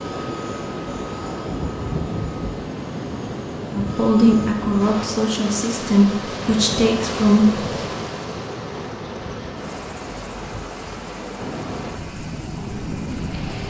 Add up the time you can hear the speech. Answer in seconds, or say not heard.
4 s.